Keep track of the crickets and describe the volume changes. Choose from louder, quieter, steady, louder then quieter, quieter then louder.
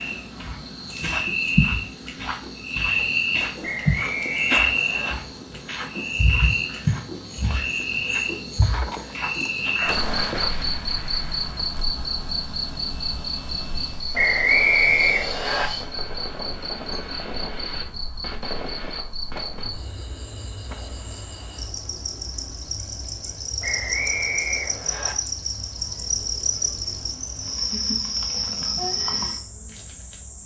quieter then louder.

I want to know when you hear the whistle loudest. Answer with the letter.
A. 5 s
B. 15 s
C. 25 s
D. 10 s
B.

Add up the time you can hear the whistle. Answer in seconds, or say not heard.
5 s.